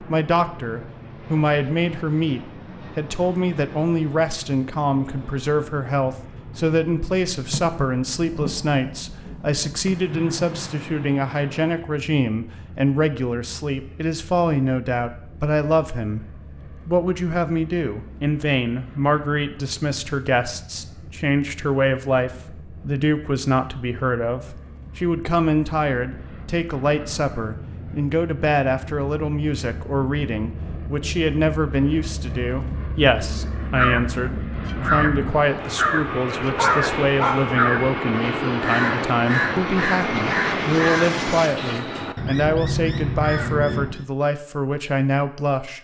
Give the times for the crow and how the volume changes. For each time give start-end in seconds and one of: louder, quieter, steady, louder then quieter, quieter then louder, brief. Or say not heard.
33.6-44.0 steady.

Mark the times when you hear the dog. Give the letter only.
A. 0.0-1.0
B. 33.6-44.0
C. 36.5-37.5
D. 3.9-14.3
C.